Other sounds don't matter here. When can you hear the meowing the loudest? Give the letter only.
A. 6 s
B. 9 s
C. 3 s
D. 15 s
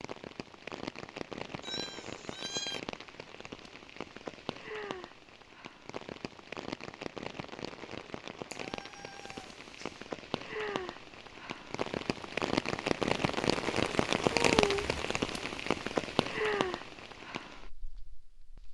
D.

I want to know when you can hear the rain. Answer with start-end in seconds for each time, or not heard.
0.0-18.6.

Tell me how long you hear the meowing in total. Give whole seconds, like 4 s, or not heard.
3 s.